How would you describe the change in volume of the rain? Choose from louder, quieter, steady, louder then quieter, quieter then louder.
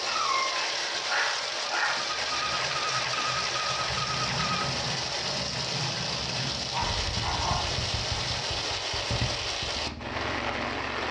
steady.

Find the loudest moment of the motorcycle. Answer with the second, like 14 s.
3 s.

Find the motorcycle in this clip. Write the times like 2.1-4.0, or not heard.
0.0-4.7, 6.8-11.0.